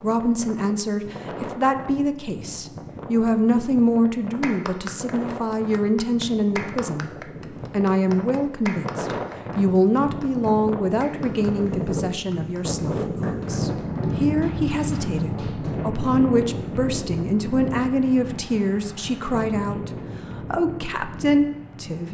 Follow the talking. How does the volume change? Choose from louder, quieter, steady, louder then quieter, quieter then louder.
steady.